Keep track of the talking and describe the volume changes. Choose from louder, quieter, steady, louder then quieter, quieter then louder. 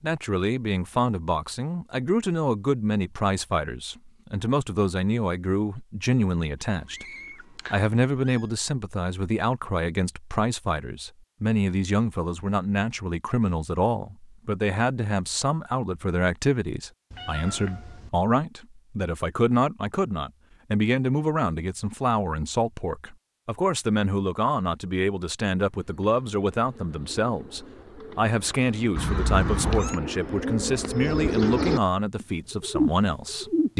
steady.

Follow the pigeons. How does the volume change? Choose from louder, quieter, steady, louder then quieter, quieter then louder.
louder.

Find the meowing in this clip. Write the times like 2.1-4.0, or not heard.
6.8-8.4, 17.1-18.1, 28.9-30.0.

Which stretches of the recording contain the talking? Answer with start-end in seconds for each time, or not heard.
0.0-7.0, 7.7-33.7.